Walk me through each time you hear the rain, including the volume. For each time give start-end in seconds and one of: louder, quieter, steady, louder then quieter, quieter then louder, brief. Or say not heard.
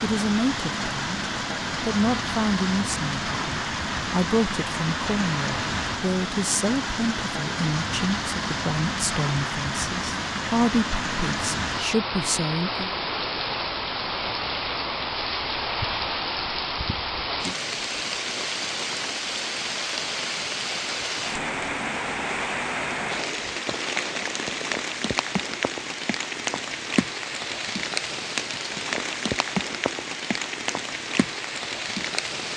0.0-32.5 steady.